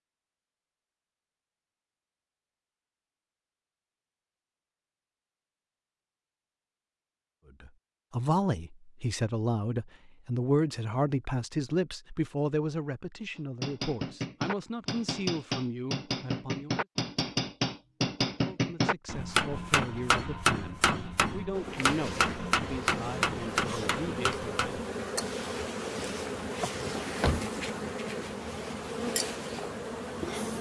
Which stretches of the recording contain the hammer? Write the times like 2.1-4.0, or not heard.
13.3-24.9.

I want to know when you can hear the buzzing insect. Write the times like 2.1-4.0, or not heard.
21.5-30.5.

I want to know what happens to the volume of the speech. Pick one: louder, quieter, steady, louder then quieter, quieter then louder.
quieter.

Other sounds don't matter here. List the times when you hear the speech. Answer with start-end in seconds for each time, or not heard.
7.6-16.9, 18.4-24.8.